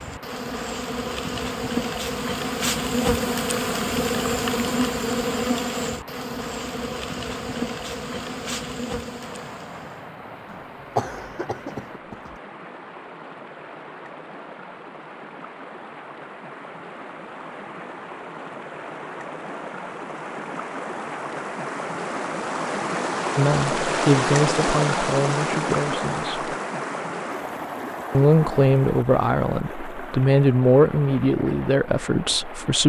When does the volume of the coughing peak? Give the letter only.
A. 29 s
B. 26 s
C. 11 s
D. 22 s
C.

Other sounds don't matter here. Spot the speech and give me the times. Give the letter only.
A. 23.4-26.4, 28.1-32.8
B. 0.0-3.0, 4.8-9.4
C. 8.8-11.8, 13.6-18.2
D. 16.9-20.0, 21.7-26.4
A.